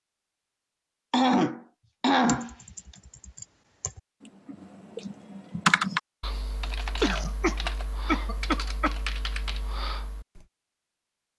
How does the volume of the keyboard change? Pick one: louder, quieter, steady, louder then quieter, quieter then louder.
louder then quieter.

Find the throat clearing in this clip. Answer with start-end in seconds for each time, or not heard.
1.1-2.5, 7.0-8.9.